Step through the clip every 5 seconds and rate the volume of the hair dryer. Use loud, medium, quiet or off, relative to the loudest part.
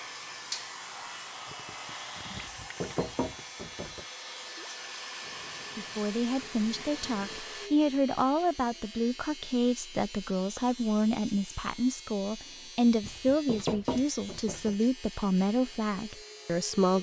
loud, loud, off, off.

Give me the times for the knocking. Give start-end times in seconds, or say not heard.
2.3-4.0, 13.0-14.8.